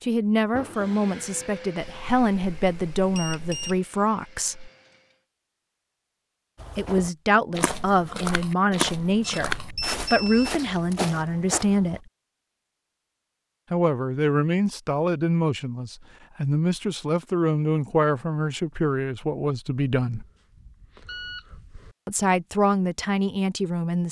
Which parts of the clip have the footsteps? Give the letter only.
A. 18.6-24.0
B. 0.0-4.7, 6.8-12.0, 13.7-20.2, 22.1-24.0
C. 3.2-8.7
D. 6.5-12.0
D.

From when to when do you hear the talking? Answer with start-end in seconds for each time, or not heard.
0.0-4.7, 6.8-12.0, 13.7-20.2, 22.1-24.0.